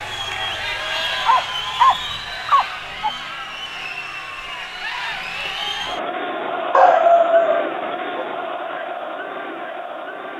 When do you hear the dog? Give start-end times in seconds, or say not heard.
1.2-3.1, 6.7-8.2.